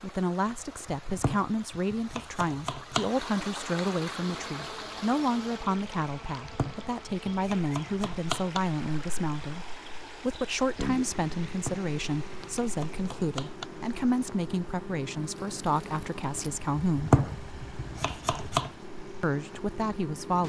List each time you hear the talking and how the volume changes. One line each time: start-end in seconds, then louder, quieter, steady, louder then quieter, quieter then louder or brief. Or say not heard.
0.0-17.2 steady
19.2-20.4 brief.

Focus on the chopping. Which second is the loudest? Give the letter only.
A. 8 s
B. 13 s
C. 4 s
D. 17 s
D.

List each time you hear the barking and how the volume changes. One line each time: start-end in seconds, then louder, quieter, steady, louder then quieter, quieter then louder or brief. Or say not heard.
not heard.